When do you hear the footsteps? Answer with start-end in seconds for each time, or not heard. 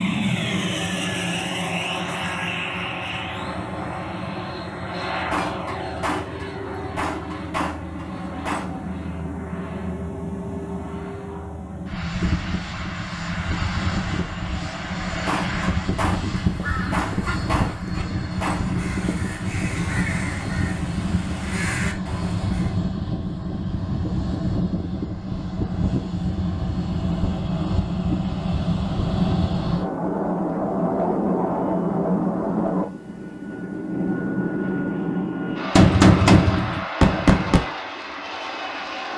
not heard.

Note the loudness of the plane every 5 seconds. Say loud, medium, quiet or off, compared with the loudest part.
loud, medium, medium, loud, loud, loud, loud, medium.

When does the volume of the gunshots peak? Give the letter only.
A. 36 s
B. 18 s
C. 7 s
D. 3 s
A.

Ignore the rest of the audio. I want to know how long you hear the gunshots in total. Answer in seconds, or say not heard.
9 s.